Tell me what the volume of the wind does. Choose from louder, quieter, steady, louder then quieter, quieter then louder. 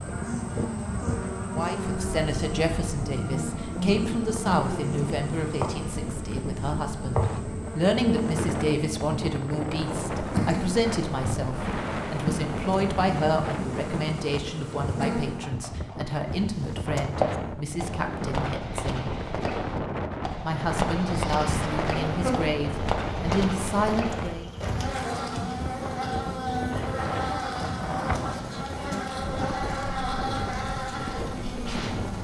steady.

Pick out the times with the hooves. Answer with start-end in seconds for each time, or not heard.
14.7-24.4.